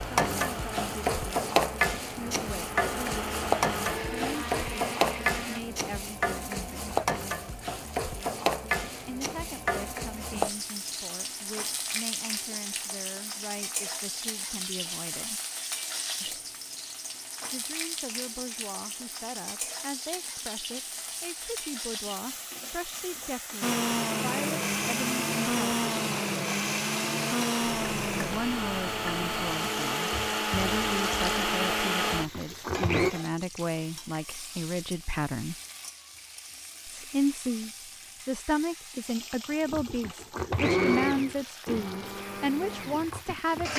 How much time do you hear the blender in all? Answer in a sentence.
The blender can be heard for 19 seconds in total.